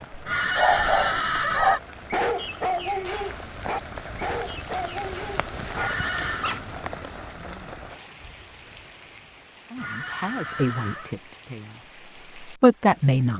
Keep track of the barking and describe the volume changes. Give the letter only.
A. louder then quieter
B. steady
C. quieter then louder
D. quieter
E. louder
D.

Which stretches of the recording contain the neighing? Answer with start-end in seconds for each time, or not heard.
0.2-1.8, 5.7-6.5, 9.8-11.2.